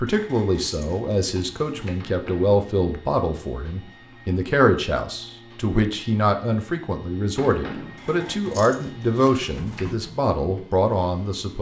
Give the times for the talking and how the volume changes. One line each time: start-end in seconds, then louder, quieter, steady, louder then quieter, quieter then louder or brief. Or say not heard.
0.0-11.5 steady.